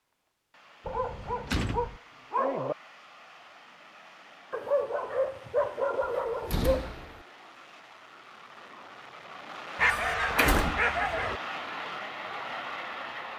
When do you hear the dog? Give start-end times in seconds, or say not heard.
0.8-2.8, 4.5-6.9, 9.8-11.4.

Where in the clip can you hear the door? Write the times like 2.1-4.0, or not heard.
0.8-2.0, 6.0-7.2, 9.9-10.8.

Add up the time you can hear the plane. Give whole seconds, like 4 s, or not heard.
13 s.